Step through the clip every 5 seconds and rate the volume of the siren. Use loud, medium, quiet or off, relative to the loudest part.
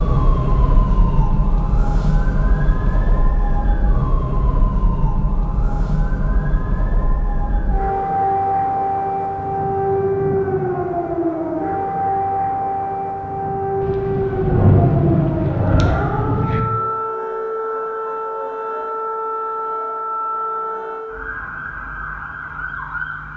loud, loud, loud, loud, medium.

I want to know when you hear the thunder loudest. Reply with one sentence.
The volume of the thunder peaks at 15 seconds.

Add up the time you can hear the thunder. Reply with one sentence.
The thunder can be heard for 3 seconds in total.